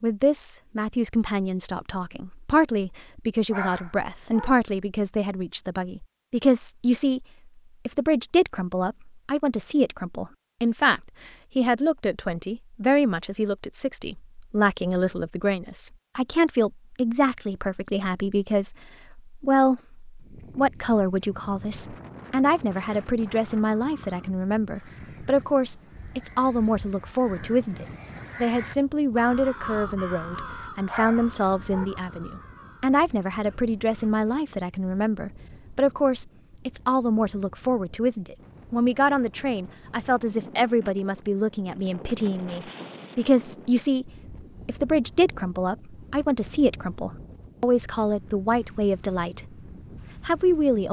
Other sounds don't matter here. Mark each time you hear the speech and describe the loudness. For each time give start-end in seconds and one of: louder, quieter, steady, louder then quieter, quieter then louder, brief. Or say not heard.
0.0-7.2 steady
7.8-49.4 steady
50.2-50.8 brief.